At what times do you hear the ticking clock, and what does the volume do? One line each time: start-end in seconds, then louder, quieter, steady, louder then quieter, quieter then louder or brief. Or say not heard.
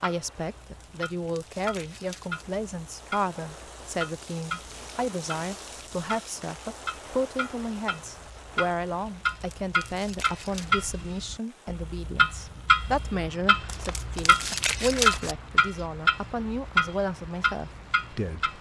0.0-18.5 louder.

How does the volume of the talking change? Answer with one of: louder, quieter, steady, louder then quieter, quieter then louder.
steady.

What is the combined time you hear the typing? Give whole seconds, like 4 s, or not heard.
not heard.